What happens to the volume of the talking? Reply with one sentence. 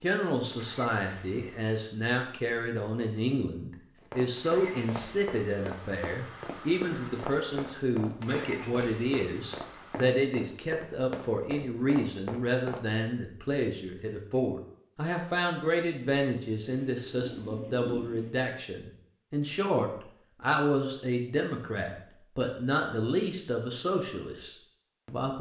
The loudness of the talking stays about the same.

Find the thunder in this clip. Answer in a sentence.
The thunder can be heard from 16.9 to 18.3 s.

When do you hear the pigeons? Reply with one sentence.
The pigeons can't be heard in this clip.